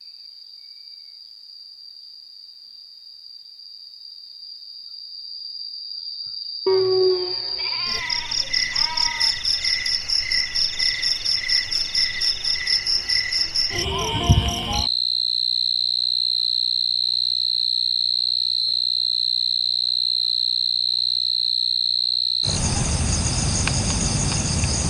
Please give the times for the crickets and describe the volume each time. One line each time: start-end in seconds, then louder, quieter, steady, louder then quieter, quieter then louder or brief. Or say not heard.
0.0-24.8 louder.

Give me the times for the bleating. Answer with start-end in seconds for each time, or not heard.
6.7-9.3.